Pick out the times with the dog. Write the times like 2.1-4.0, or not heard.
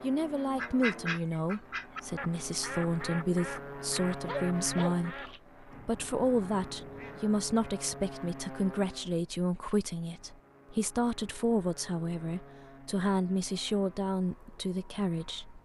4.0-5.4.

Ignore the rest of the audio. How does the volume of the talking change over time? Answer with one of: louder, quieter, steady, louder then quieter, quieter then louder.
steady.